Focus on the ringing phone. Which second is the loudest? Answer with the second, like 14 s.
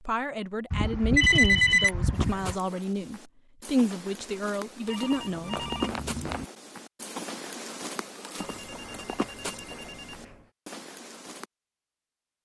1 s.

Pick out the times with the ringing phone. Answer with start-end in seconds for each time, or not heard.
0.7-2.5, 4.9-6.5, 8.3-10.4.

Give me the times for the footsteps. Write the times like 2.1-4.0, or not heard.
2.1-11.4.